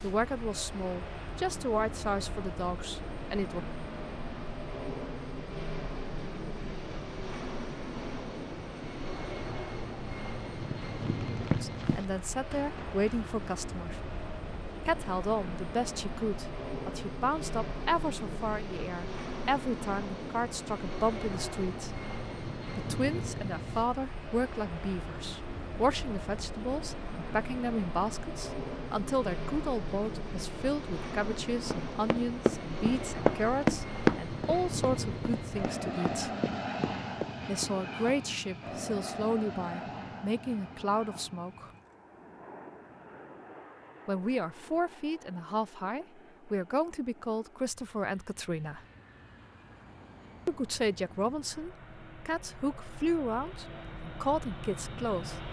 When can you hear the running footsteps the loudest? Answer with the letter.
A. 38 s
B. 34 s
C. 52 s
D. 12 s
B.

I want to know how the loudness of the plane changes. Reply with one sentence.
The volume of the plane goes down.